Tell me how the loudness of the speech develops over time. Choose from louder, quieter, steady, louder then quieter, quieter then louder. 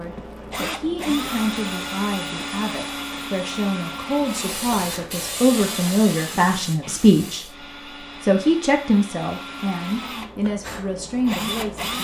louder then quieter.